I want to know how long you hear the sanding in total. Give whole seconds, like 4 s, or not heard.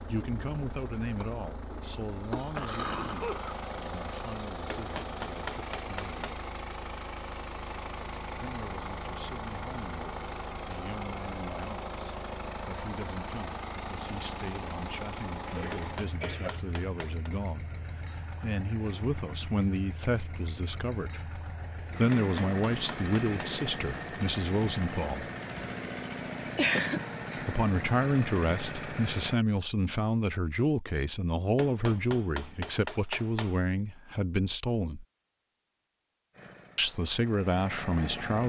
not heard.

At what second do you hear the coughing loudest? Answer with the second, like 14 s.
27 s.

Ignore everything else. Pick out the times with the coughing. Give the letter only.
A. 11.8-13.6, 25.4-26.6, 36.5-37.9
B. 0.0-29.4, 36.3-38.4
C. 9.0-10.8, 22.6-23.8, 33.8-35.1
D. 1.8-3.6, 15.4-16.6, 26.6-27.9
D.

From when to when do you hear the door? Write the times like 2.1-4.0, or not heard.
not heard.